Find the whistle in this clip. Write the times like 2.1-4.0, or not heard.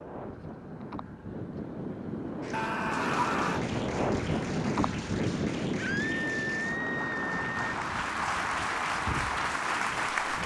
not heard.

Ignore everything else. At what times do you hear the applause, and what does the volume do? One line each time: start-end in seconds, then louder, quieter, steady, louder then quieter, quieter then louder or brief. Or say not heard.
2.4-10.4 louder.